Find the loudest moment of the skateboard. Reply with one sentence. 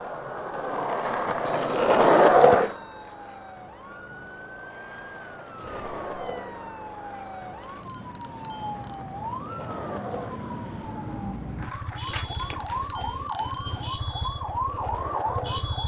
The volume of the skateboard peaks at 2 seconds.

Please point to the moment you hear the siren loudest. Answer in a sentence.
The volume of the siren peaks at 15 seconds.